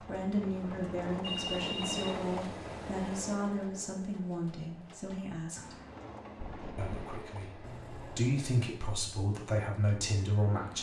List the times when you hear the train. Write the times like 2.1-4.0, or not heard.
0.0-10.7.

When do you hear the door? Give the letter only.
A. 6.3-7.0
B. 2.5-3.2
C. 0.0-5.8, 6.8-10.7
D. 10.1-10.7
A.